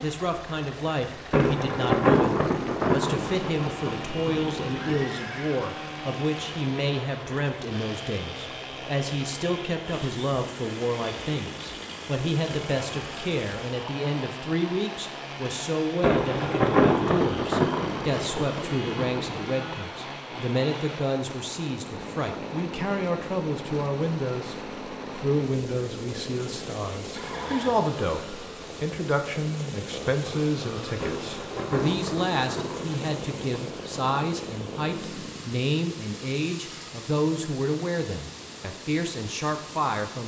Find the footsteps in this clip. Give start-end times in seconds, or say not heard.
not heard.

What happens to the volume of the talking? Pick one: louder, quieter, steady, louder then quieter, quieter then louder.
steady.